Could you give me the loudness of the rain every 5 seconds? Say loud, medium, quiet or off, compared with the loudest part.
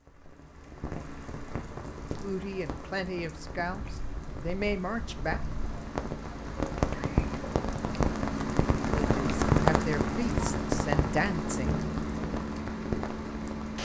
quiet, loud, loud.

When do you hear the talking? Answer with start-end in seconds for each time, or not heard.
2.2-5.4, 9.0-11.8.